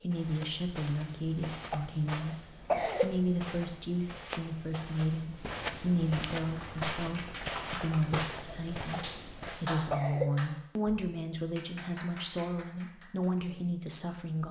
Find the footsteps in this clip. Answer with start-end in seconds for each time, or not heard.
0.1-9.8.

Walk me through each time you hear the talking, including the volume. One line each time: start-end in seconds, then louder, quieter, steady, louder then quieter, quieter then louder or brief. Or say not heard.
0.0-14.4 steady.